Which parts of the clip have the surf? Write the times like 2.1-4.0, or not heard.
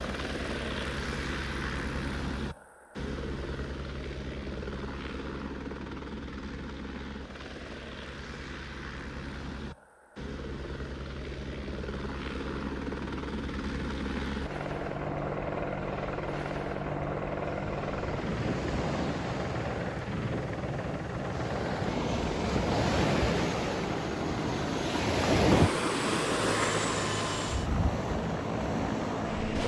14.7-29.6.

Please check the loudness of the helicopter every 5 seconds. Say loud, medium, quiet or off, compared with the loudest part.
loud, medium, loud, loud, loud, loud.